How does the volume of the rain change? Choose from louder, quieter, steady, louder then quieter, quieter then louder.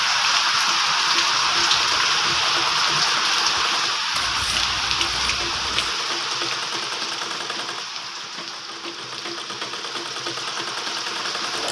quieter.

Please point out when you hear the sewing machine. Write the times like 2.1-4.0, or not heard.
0.1-11.6.